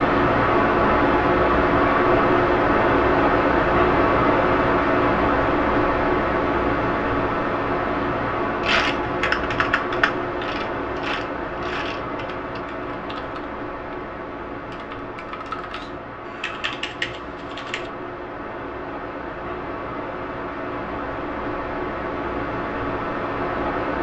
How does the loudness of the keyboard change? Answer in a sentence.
The volume of the keyboard goes down, then up.